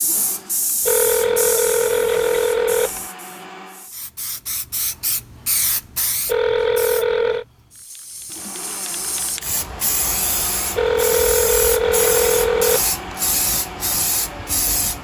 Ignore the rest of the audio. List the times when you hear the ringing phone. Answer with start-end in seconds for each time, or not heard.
0.8-3.0, 6.2-7.5, 10.8-12.9.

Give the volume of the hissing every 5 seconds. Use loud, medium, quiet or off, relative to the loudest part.
medium, medium, loud.